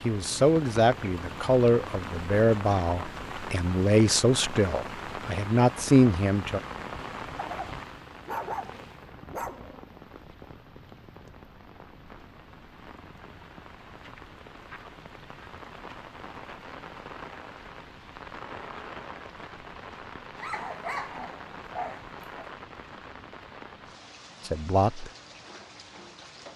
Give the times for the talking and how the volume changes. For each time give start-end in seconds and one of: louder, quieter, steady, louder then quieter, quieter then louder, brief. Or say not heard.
0.0-6.6 quieter then louder
24.4-25.1 brief.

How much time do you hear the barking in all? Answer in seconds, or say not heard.
5 s.